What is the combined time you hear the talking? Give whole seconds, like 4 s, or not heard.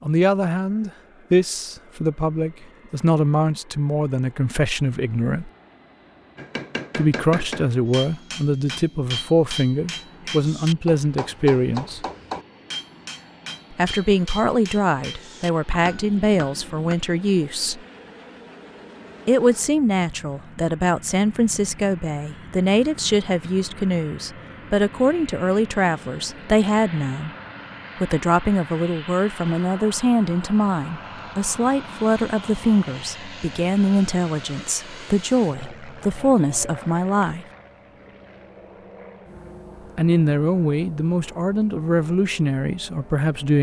36 s.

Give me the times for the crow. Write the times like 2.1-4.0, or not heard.
not heard.